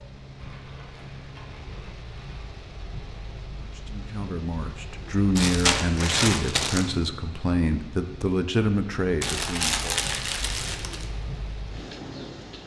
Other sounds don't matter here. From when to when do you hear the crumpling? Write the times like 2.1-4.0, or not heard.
0.3-2.4, 5.3-6.9, 9.2-11.1.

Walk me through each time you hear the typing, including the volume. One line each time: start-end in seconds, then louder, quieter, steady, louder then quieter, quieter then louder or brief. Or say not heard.
not heard.